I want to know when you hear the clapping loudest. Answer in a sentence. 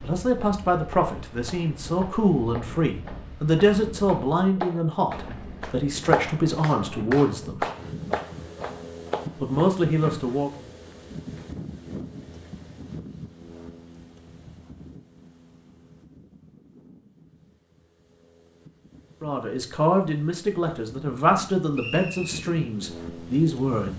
The loudest moment of the clapping is at 6 seconds.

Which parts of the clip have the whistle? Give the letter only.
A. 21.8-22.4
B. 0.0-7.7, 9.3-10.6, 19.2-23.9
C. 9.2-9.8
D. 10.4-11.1
A.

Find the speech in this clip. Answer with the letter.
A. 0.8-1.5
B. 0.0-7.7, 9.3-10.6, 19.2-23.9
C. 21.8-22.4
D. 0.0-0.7
B.